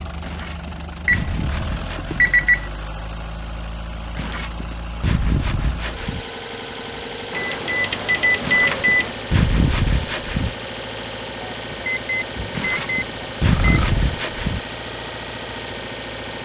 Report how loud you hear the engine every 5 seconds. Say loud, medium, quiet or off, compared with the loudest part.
medium, loud, loud, loud.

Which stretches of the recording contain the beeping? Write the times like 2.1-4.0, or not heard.
1.1-2.7, 7.3-9.2, 11.8-13.8.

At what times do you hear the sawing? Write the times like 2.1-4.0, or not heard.
0.2-2.3, 4.2-6.2, 8.4-10.6, 12.5-14.6.